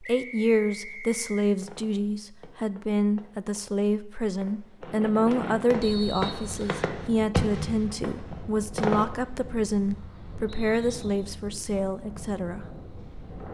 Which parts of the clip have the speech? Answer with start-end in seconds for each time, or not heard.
0.0-12.7.